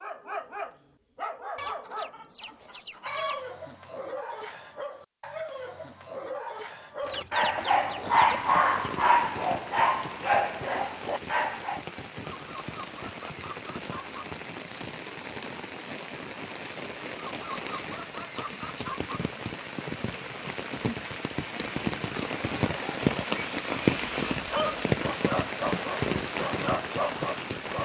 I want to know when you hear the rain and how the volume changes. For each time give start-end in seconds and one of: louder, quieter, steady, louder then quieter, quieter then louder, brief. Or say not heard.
7.8-27.8 louder.